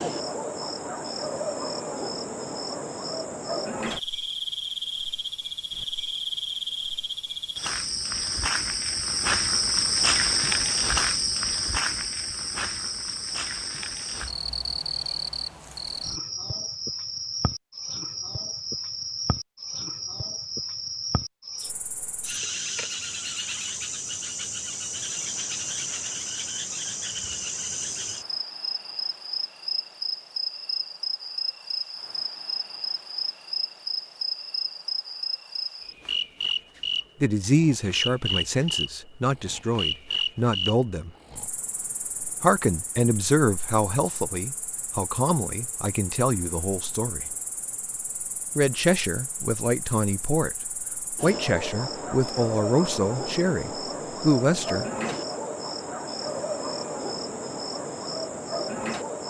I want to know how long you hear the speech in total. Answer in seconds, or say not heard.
15 s.